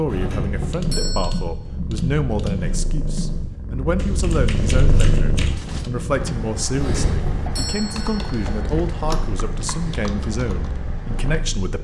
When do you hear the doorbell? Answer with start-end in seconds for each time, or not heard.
0.1-1.4, 6.7-8.5.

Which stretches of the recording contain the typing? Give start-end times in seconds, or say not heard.
0.6-11.4.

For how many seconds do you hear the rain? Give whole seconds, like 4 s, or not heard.
not heard.